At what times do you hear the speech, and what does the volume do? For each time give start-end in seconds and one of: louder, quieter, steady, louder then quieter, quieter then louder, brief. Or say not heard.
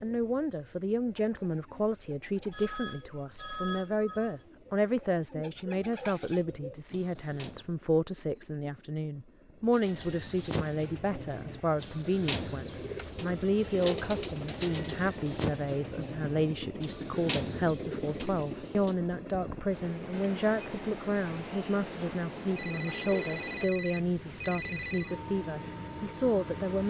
0.0-26.8 steady.